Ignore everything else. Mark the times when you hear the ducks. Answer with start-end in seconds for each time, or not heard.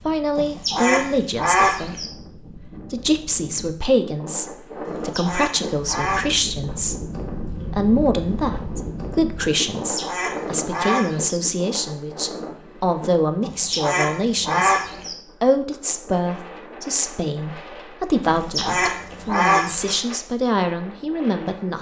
0.3-2.1, 4.8-6.3, 9.7-11.4, 13.4-15.2, 18.2-20.0.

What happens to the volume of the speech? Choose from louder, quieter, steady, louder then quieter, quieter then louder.
steady.